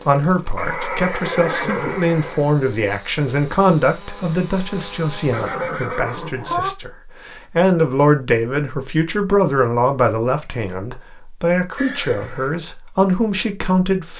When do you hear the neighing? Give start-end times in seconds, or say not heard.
0.6-2.5, 5.3-6.7, 11.8-12.5.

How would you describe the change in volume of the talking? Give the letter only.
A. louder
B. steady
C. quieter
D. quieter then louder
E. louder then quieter
B.